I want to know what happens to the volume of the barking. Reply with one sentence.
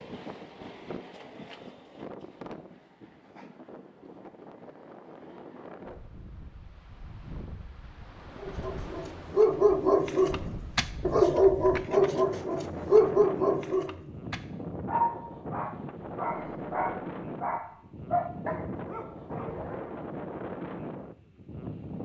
The volume of the barking goes down.